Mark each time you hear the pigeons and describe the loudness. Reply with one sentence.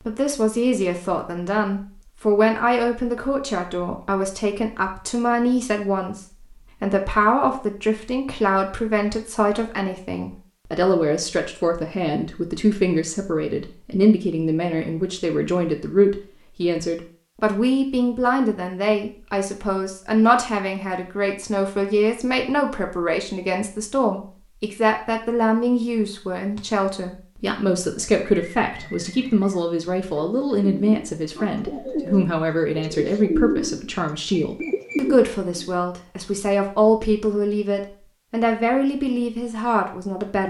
The pigeons can be heard from 27.8 to 35.7 s, getting louder.